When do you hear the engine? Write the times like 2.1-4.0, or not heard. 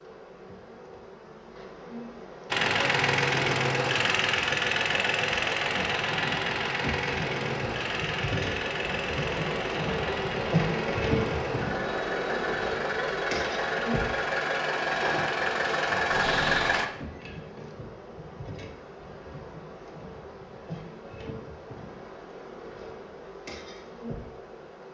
2.5-16.9.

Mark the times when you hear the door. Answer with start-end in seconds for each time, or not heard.
16.1-16.9.